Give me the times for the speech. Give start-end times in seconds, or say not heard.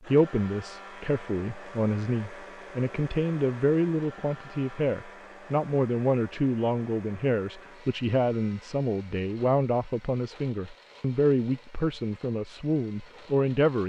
0.1-13.8.